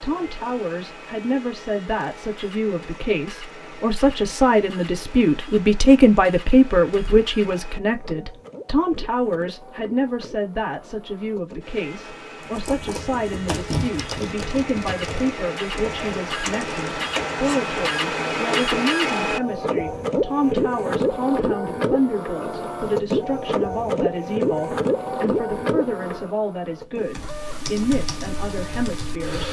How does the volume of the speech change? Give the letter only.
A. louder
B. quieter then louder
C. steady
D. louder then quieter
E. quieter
E.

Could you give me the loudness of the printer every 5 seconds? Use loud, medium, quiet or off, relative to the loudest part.
quiet, quiet, quiet, loud, loud, medium.